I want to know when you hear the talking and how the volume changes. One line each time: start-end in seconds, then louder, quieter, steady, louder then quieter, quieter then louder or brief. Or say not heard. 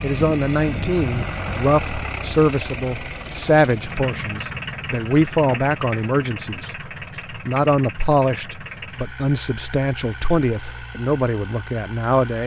0.0-12.4 steady.